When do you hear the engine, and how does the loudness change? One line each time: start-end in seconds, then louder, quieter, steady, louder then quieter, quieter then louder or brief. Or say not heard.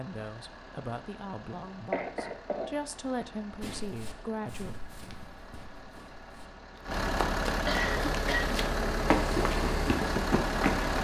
0.0-10.9 louder.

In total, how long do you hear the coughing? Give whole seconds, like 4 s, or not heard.
2 s.